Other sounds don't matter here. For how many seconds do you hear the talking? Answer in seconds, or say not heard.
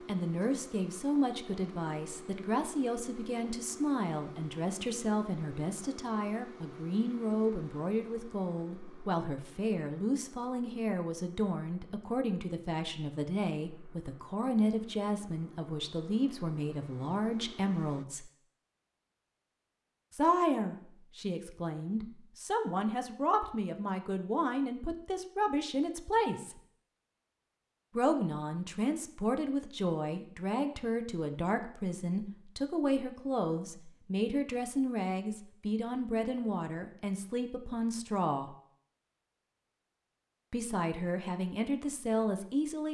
38 s.